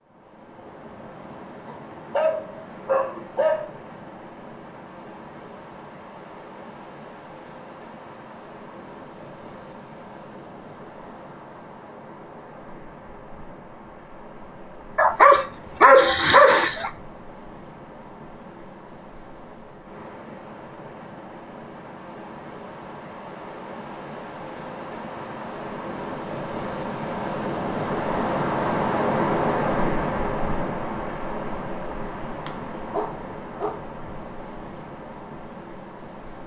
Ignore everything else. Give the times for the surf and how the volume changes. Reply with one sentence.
You can hear the surf from 0.0 to 36.4 s, getting louder.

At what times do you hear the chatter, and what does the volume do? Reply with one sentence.
The chatter can't be heard in this clip.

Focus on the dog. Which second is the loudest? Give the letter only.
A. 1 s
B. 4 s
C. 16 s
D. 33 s
C.